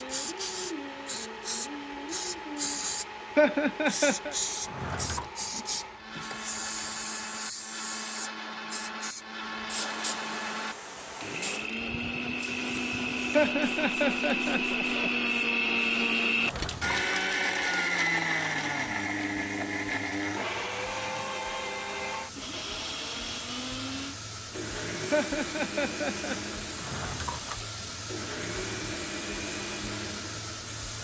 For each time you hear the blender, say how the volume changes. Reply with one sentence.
The blender can be heard from 0.0 to 30.8 s, getting louder then quieter.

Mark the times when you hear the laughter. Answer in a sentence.
You can hear the laughter from 3.4 to 4.3 s, from 13.3 to 15.1 s and from 25.1 to 26.4 s.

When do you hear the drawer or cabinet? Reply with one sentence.
The drawer or cabinet can be heard from 4.6 to 5.3 s, from 16.4 to 17.2 s and from 26.7 to 27.6 s.